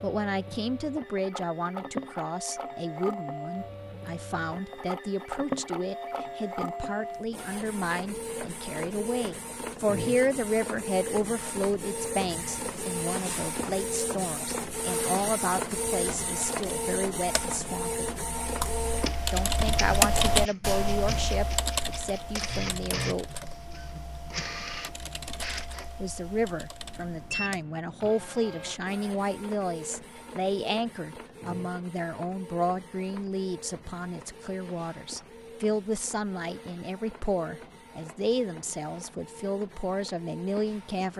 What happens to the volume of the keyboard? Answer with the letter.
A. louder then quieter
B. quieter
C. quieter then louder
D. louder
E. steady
A.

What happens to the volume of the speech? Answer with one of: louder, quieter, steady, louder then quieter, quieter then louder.
steady.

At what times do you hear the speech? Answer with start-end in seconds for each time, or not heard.
0.0-18.1, 19.3-23.4, 26.0-41.1.